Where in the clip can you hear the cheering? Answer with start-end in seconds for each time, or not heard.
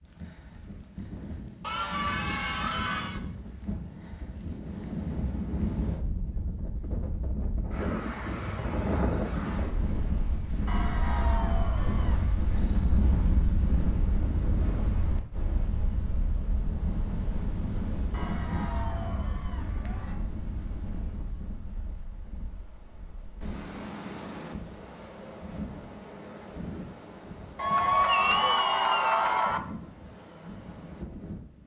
1.6-3.2, 10.7-12.4, 18.1-20.1, 27.6-29.6.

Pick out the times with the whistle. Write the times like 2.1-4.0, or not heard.
not heard.